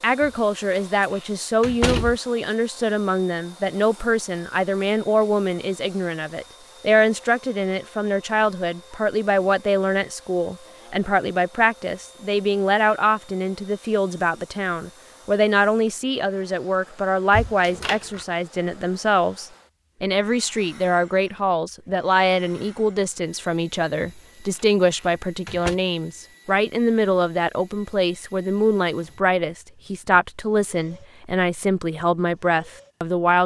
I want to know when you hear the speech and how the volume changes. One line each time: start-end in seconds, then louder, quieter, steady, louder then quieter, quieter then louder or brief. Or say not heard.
0.0-33.4 steady.